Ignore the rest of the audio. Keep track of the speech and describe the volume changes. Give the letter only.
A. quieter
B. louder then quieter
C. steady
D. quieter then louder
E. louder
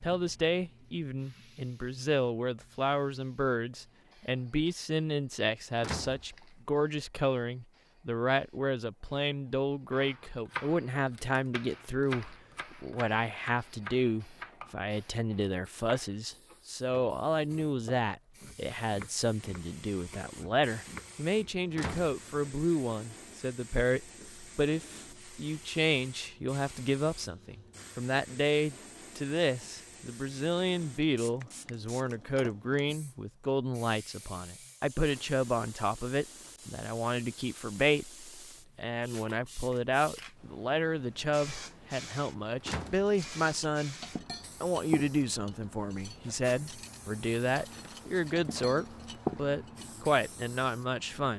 C.